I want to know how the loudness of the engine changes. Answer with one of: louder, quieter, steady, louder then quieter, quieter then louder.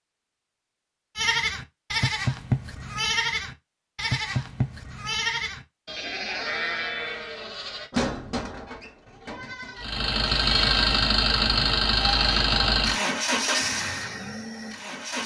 quieter.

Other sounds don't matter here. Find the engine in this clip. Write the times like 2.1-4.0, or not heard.
9.8-15.2.